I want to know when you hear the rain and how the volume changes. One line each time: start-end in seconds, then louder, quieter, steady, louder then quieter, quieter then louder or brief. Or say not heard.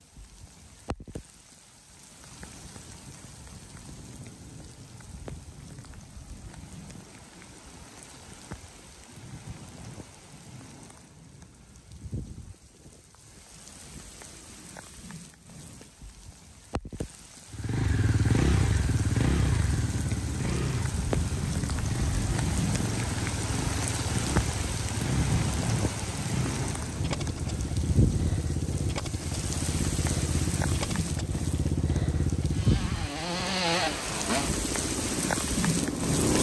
0.0-36.3 louder.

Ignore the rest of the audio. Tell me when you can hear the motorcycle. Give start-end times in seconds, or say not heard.
17.5-36.3.